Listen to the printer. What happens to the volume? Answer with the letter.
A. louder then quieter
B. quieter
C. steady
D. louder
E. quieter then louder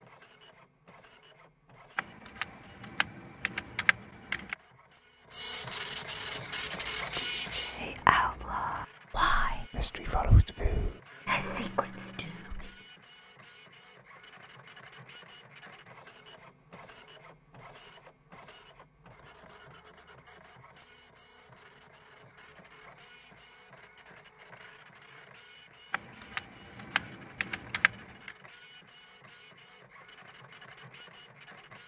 B.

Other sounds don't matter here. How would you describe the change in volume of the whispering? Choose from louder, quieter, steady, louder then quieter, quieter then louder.
louder then quieter.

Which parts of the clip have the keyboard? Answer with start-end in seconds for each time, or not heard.
1.9-4.5, 25.9-28.4.